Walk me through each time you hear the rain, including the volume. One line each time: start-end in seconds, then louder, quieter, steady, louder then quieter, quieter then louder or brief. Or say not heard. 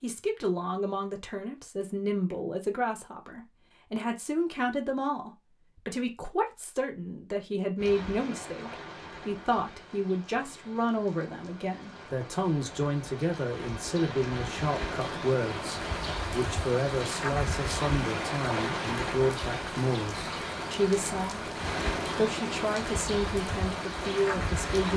7.8-24.9 louder.